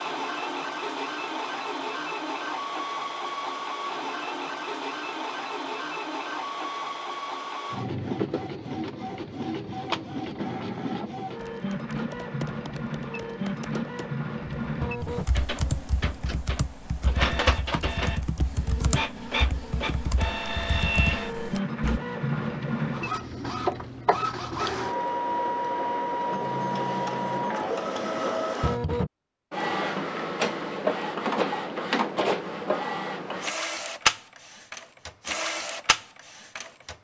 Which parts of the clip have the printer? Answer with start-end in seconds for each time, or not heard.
0.0-36.9.